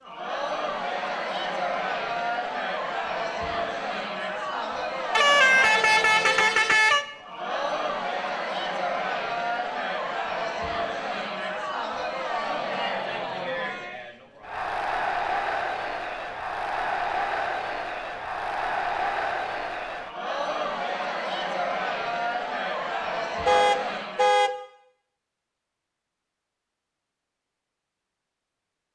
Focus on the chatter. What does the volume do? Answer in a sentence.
The loudness of the chatter stays about the same.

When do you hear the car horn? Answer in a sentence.
You can hear the car horn from 5.2 to 7.0 s and from 23.4 to 24.5 s.